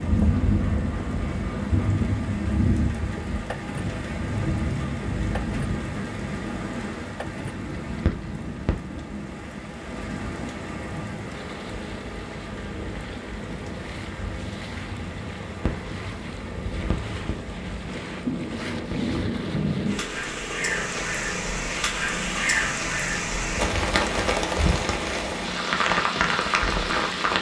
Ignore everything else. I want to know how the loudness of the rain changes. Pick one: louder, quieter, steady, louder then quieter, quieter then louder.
quieter then louder.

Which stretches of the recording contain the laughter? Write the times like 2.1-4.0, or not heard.
not heard.